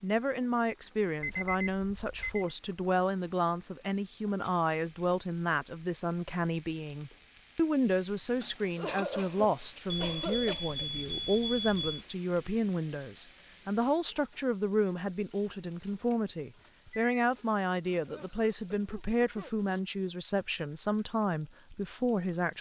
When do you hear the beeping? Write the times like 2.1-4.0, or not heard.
1.2-2.5, 9.8-12.1, 15.9-17.2.